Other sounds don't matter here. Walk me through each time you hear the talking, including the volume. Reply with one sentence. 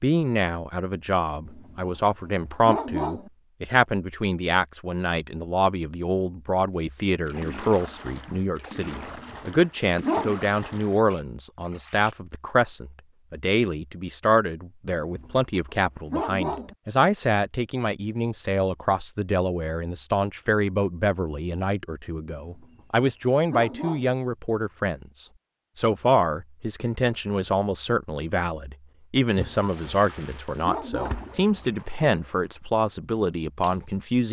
You can hear the talking from 0.0 to 34.2 s, at a steady volume.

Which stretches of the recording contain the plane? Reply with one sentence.
You can't hear the plane here.